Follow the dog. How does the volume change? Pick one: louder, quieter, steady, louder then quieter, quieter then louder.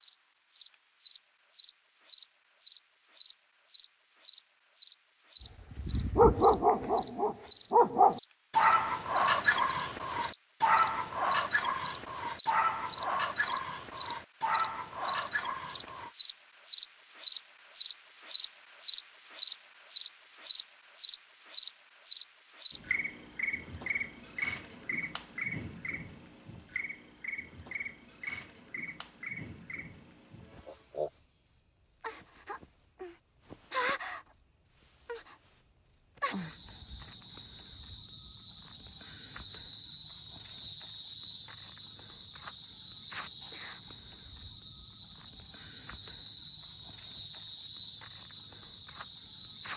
quieter.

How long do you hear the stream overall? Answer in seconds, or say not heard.
not heard.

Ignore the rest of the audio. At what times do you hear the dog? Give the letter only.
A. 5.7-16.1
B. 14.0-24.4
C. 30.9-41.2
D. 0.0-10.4
A.